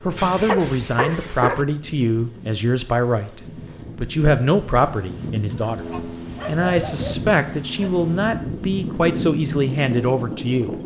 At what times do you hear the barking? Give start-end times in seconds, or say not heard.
0.1-1.6, 5.5-8.0.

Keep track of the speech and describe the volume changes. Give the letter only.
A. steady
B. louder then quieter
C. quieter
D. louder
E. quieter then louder
A.